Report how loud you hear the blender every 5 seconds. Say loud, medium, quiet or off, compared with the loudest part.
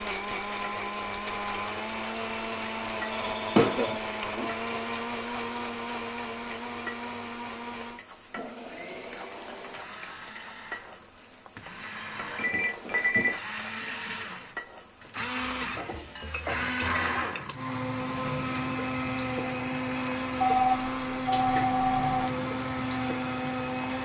loud, medium, medium, loud, loud.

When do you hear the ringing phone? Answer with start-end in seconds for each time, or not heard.
3.0-4.5, 12.3-13.4, 20.4-22.3.